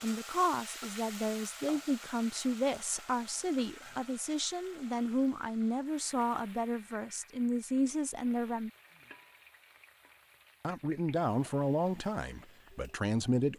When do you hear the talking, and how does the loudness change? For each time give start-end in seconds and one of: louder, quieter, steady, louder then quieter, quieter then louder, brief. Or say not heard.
0.0-8.7 steady
10.6-13.5 brief.